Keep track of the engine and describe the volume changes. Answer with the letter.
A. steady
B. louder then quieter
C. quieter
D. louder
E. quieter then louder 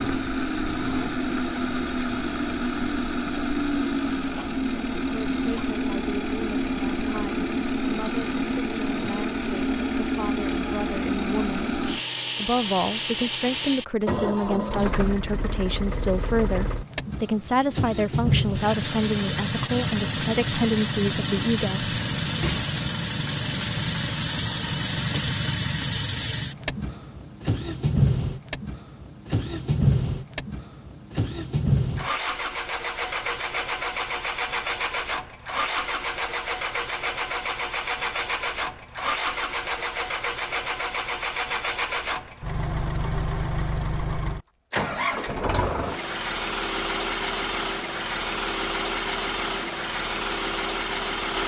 A.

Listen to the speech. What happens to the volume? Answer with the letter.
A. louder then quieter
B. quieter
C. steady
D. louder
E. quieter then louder
D.